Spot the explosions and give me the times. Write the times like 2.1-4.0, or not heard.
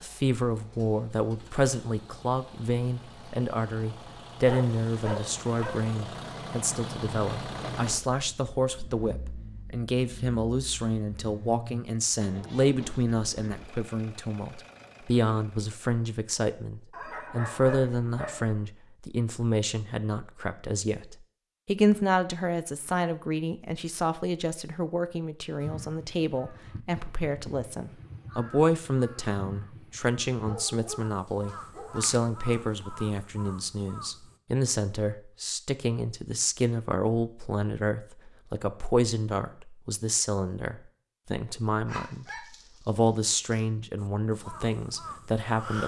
not heard.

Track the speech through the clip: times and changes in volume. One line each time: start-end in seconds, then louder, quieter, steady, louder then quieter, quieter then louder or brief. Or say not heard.
0.0-42.2 steady
42.9-45.8 brief.